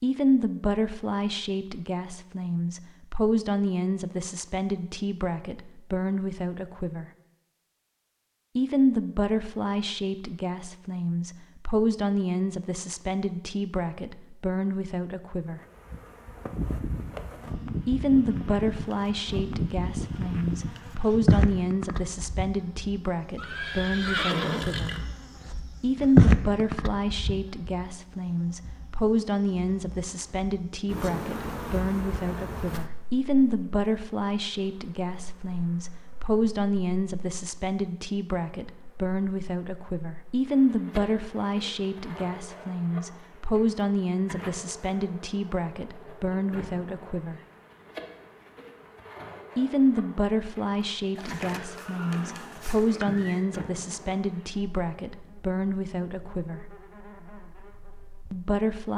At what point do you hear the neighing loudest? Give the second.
24 s.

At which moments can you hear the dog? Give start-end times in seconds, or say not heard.
not heard.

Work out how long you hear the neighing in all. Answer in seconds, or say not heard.
4 s.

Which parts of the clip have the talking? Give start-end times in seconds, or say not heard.
0.0-7.0, 8.6-15.6, 17.9-24.9, 25.8-47.4, 49.5-56.6, 58.3-58.9.